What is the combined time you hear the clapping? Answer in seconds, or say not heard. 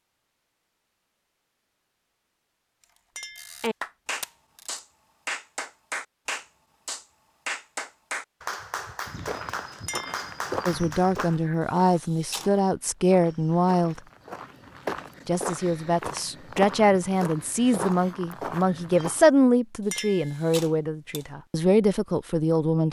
8 s.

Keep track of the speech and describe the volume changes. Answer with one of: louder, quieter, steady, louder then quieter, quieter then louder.
steady.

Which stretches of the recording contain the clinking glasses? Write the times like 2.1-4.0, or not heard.
3.1-3.6, 9.8-10.2, 19.9-20.4.